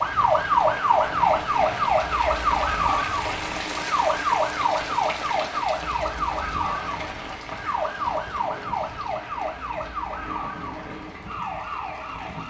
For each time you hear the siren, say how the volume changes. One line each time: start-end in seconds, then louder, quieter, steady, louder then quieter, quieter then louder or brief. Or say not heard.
0.0-12.4 quieter.